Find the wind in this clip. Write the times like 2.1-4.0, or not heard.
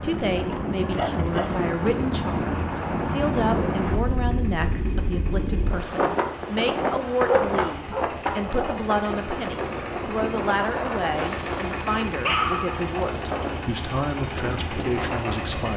0.0-15.7.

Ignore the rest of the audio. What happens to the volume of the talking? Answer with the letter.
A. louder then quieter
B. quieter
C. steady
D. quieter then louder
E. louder
C.